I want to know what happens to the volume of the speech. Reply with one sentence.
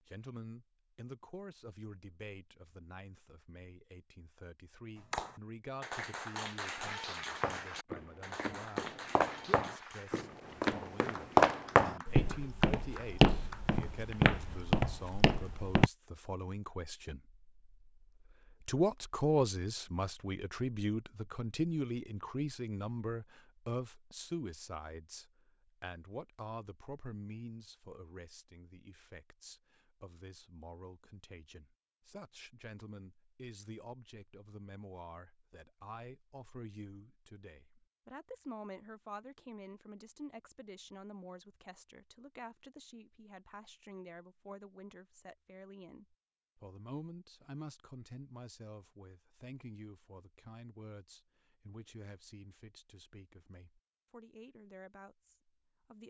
The volume of the speech goes up, then down.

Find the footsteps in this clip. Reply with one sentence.
You can hear the footsteps from 7.4 to 15.9 s.